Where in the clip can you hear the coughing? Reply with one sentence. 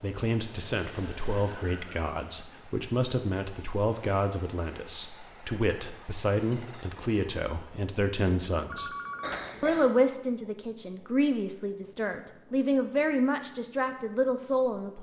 The coughing can be heard from 9.2 to 9.9 s.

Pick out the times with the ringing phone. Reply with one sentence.
You can hear the ringing phone from 8.7 to 9.6 s.